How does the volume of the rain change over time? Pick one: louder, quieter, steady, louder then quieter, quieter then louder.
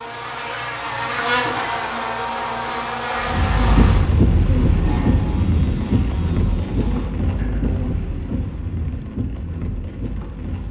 quieter.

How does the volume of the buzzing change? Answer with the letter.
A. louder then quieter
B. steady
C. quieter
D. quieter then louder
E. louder
C.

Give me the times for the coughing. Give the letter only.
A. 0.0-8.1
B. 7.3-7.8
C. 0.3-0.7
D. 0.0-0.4
B.